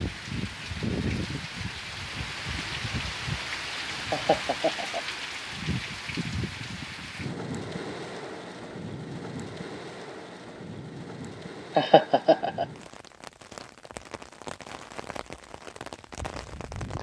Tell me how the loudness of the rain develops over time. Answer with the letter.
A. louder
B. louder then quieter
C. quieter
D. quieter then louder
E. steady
C.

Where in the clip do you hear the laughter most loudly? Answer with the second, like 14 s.
12 s.